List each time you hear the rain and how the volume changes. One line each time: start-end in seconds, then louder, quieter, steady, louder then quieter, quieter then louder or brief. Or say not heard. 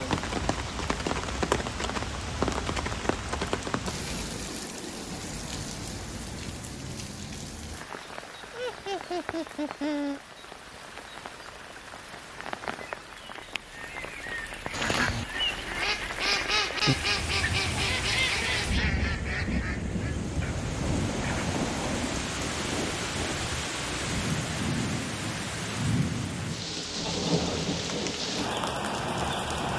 0.0-29.7 quieter then louder.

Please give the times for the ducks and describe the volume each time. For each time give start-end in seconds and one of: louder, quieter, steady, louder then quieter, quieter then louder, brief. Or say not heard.
14.7-22.0 quieter.